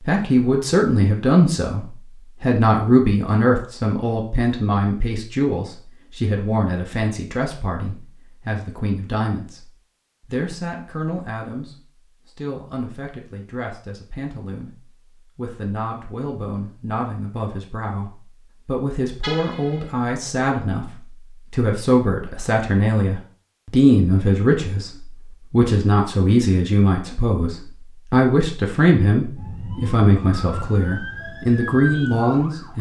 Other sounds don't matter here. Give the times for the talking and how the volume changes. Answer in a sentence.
The talking can be heard from 0.1 to 32.7 s, getting quieter then louder.